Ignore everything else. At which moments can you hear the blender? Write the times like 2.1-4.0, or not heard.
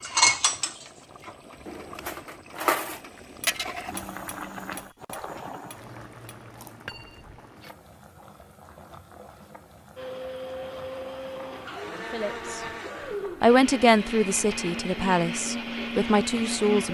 9.9-16.8.